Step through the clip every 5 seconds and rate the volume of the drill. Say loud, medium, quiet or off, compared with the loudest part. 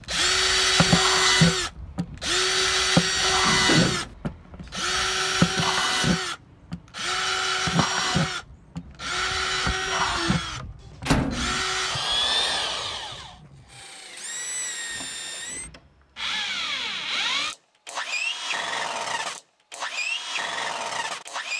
loud, loud, medium, medium, medium.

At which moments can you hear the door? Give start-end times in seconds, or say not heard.
3.4-4.2, 11.1-11.7, 14.9-15.8.